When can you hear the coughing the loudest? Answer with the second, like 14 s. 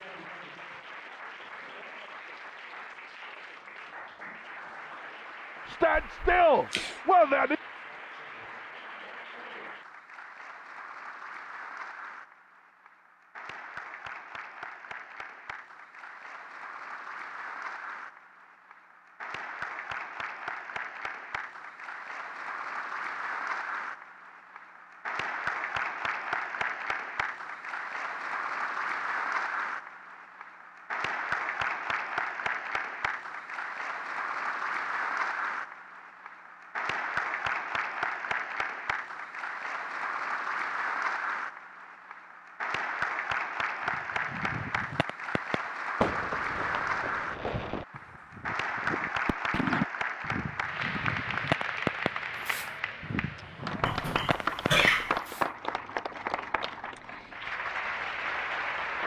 55 s.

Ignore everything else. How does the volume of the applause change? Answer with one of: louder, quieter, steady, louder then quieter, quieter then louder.
louder.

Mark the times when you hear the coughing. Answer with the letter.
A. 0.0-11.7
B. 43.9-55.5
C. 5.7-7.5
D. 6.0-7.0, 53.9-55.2
D.